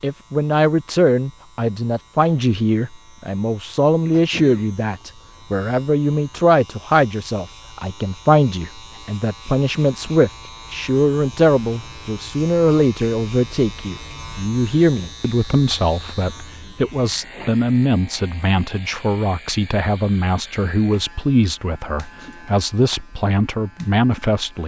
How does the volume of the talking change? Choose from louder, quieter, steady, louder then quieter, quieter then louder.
steady.